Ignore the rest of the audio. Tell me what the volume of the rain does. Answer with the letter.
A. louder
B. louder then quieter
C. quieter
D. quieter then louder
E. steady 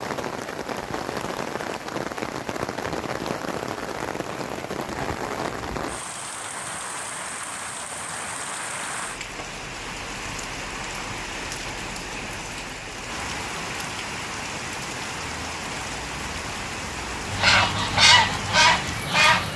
E.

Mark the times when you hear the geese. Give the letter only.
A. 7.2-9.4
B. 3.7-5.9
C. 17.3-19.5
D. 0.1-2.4
C.